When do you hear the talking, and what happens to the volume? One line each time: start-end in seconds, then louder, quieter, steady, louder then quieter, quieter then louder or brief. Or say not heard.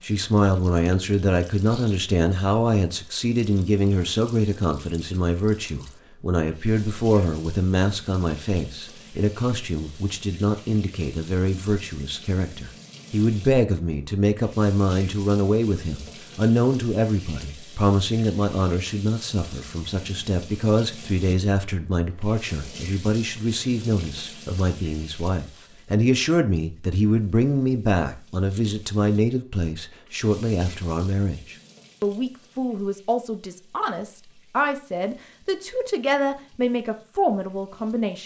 0.0-38.2 steady.